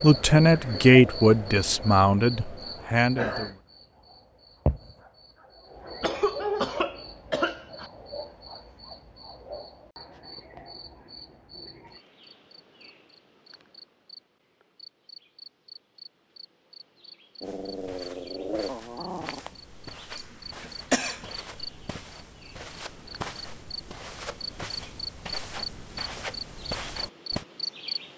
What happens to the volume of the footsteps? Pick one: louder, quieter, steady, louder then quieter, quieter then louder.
louder.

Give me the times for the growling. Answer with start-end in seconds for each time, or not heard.
17.4-19.4.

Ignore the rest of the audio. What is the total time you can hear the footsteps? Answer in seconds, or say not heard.
10 s.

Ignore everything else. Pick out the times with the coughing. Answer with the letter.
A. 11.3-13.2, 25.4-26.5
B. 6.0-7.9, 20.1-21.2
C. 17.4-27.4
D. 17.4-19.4
B.